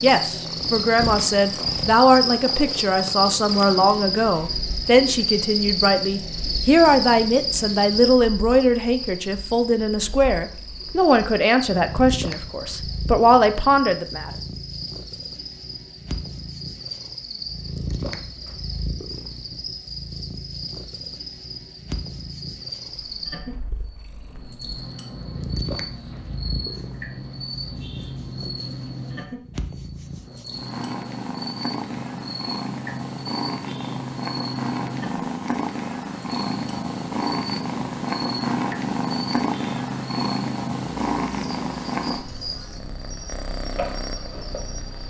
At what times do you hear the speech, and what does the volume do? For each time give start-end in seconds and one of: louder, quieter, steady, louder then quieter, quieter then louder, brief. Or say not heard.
0.0-14.3 steady.